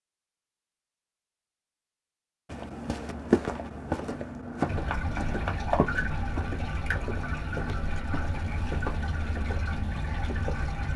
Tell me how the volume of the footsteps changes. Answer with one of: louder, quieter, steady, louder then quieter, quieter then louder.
quieter.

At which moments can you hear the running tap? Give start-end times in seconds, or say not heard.
4.7-10.9.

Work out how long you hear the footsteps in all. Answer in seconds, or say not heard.
8 s.